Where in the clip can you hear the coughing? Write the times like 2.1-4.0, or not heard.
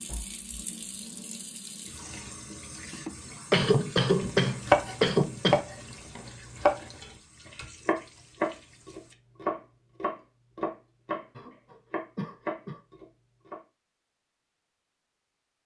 2.9-5.6, 11.3-12.8.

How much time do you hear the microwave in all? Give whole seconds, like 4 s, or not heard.
not heard.